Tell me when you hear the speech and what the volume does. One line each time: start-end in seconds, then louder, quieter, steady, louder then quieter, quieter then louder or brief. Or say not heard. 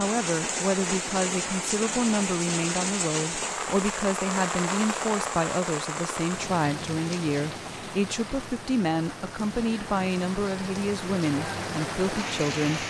0.0-12.8 steady.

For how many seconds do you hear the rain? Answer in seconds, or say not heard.
13 s.